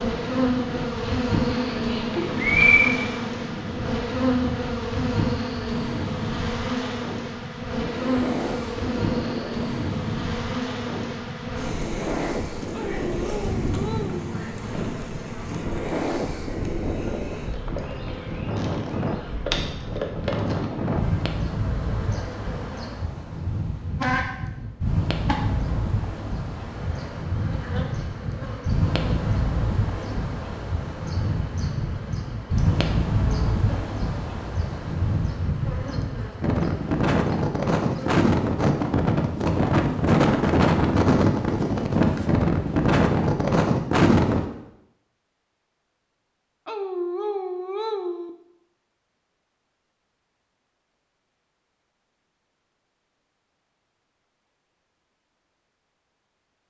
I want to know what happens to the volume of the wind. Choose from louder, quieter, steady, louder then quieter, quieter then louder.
louder.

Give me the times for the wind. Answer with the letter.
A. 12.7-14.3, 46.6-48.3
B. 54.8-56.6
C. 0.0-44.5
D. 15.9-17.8
C.